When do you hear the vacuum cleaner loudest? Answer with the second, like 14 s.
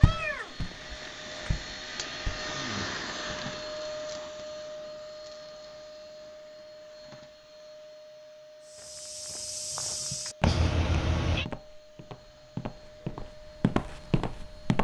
3 s.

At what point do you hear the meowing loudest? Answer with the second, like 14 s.
11 s.